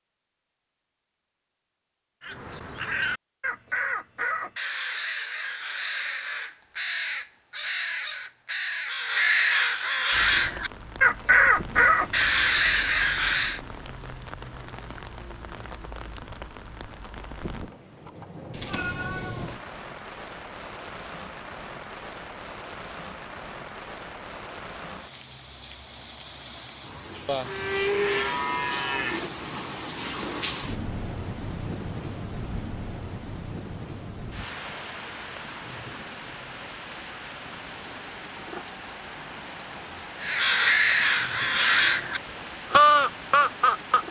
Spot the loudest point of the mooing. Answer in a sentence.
The volume of the mooing peaks at 28 seconds.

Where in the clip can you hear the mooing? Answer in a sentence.
The mooing can be heard from 27.2 to 29.3 s.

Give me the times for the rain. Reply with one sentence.
You can hear the rain from 10.1 to 44.0 s.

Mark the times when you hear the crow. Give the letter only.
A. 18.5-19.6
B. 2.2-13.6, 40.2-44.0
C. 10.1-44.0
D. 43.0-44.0
B.